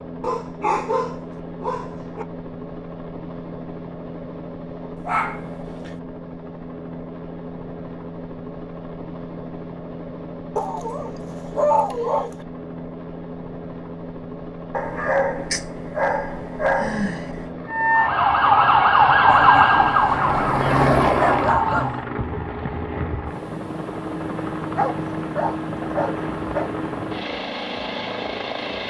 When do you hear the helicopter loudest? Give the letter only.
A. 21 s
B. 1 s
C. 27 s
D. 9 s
A.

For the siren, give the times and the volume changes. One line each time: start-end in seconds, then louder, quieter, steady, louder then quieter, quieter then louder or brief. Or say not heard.
17.7-22.0 quieter.